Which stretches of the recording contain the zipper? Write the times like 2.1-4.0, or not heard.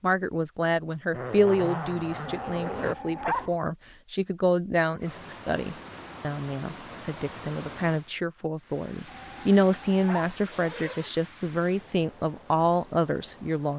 1.1-3.0, 4.8-5.2, 10.4-11.2.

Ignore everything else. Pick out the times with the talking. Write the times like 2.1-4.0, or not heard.
0.0-13.7.